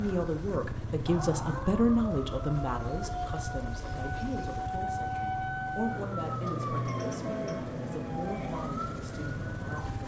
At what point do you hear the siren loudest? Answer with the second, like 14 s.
7 s.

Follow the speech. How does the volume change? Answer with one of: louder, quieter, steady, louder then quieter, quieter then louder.
quieter.